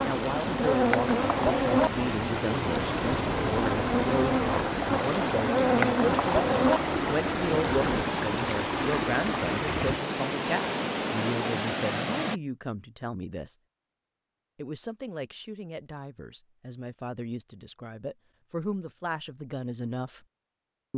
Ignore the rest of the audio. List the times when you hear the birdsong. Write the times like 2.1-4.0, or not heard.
not heard.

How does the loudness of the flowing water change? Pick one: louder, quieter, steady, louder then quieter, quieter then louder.
steady.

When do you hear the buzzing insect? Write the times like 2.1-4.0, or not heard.
0.0-8.1.